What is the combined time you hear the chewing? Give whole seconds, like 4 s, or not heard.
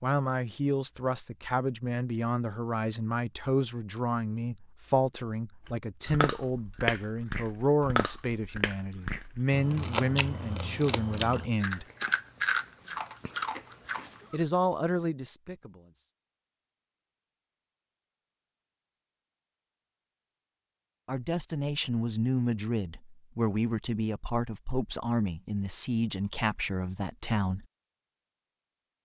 9 s.